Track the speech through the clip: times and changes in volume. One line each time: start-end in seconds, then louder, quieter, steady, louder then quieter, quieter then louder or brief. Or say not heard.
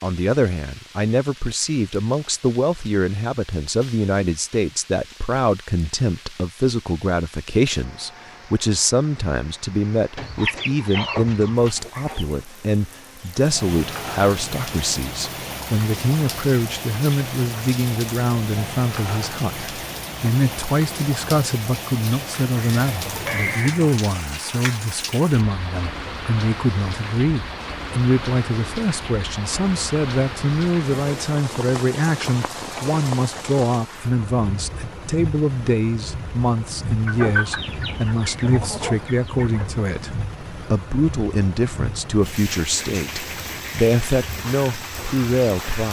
0.0-45.8 steady.